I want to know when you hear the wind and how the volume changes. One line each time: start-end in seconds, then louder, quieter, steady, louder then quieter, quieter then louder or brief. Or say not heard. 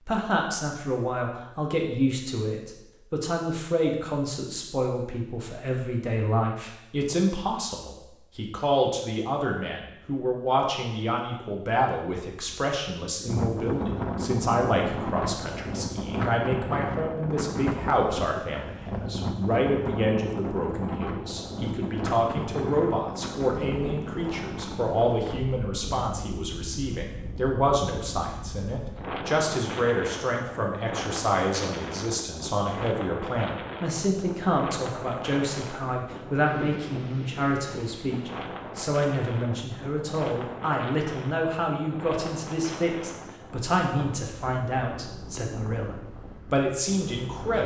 13.2-47.6 quieter.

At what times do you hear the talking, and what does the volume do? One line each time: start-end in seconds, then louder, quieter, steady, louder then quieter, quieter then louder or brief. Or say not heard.
0.1-47.6 steady.